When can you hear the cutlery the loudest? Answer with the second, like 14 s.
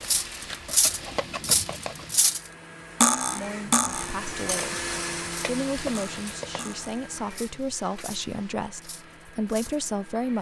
3 s.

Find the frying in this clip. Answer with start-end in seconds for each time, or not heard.
0.0-2.2, 5.2-8.6.